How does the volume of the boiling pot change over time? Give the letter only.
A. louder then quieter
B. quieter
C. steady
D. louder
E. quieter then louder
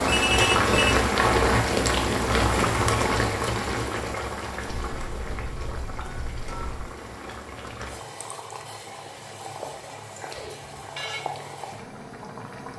B.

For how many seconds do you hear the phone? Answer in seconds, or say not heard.
4 s.